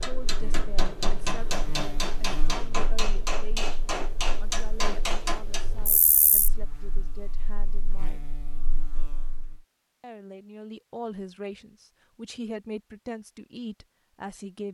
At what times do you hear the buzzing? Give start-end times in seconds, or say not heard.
0.0-9.6.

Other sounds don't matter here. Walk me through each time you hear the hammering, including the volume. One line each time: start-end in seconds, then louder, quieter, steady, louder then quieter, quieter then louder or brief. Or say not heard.
0.0-6.0 steady.